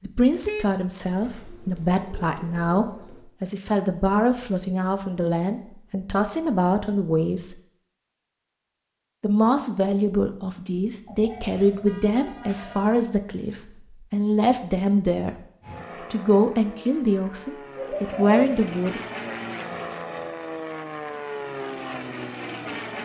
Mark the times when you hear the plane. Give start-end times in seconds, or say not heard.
15.6-23.0.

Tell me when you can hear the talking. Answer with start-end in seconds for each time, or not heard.
0.0-7.5, 9.2-15.3, 16.1-19.0.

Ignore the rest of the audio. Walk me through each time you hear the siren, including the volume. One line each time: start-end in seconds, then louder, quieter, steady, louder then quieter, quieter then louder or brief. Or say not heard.
not heard.